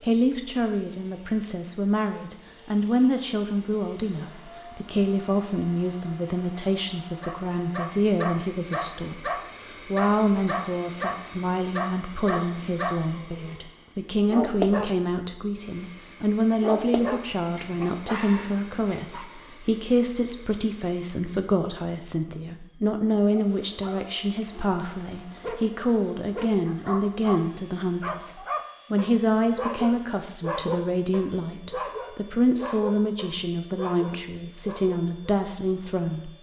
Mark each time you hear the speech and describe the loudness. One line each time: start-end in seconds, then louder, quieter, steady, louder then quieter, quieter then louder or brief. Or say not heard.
0.0-36.3 steady.